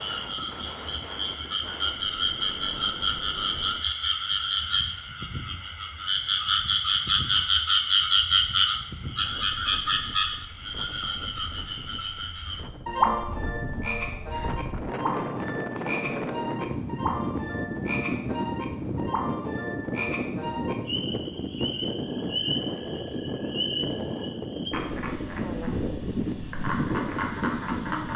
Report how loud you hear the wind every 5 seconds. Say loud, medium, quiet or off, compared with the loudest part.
quiet, quiet, medium, loud, loud, loud.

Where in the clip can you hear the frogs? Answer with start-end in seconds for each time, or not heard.
0.0-28.1.